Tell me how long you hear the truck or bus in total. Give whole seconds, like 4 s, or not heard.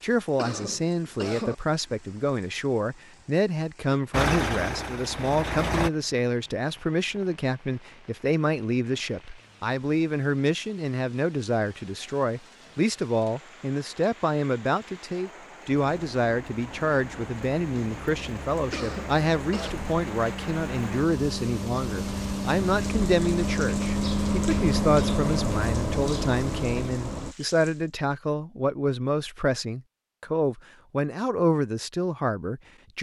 13 s.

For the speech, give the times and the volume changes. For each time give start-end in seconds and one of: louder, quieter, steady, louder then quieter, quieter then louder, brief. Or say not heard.
0.0-32.9 steady.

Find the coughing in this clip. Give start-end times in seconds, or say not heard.
0.3-1.6, 18.7-19.8.